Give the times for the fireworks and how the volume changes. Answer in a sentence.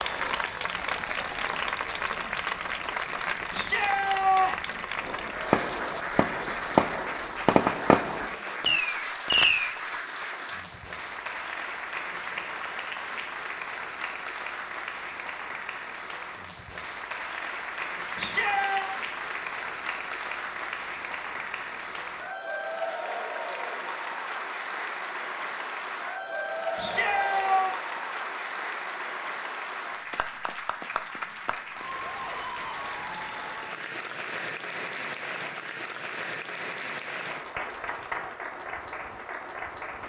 You can hear the fireworks from 5.0 to 9.8 s, at a steady volume.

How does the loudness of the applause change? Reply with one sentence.
The loudness of the applause stays about the same.